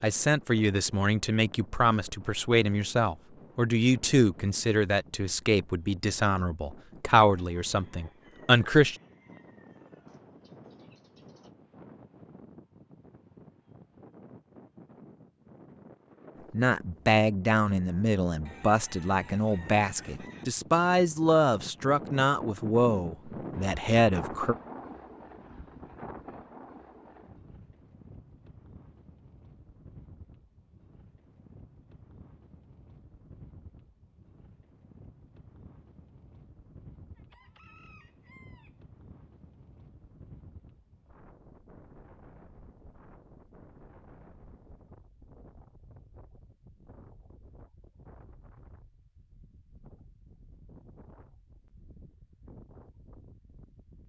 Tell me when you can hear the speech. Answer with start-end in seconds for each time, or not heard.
0.0-8.9, 16.5-24.6.